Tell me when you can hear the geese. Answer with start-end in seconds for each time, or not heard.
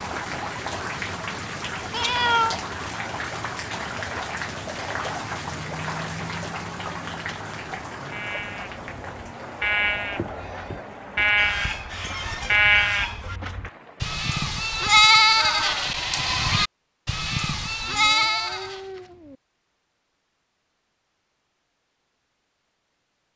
11.3-13.4.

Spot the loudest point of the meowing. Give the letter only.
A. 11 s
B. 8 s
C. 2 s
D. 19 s
C.